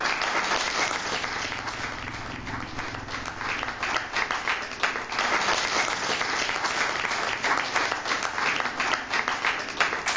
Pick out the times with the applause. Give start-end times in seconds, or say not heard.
0.0-10.1.